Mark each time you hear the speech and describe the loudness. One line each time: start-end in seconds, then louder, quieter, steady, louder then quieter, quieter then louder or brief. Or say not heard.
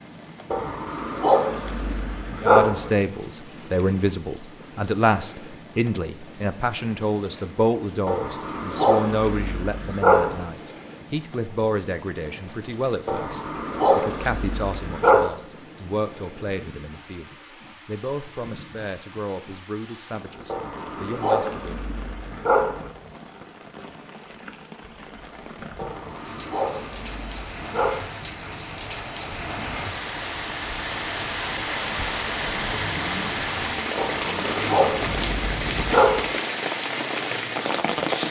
2.4-21.9 quieter.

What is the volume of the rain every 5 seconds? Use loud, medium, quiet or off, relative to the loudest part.
quiet, quiet, quiet, quiet, quiet, medium, loud, loud.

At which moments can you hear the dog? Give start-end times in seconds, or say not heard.
0.5-2.9, 8.1-10.4, 13.1-15.3, 20.5-22.9, 25.8-27.9, 34.0-36.2.